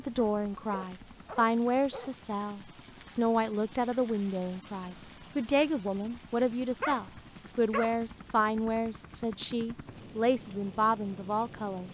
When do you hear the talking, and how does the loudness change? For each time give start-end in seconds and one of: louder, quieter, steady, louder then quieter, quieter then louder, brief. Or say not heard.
0.0-11.8 steady.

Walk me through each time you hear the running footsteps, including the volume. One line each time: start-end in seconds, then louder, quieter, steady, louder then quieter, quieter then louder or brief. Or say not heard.
not heard.